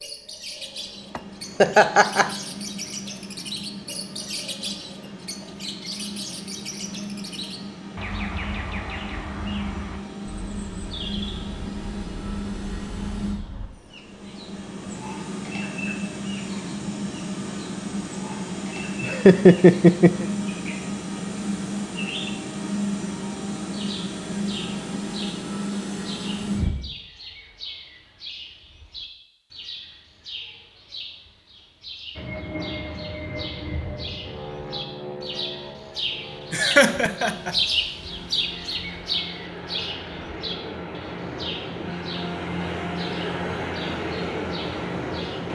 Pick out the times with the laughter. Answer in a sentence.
The laughter can be heard from 1.1 to 2.3 s, from 19.0 to 20.2 s and from 36.5 to 37.5 s.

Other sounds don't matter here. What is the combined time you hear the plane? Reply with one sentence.
The plane can be heard for 40 seconds in total.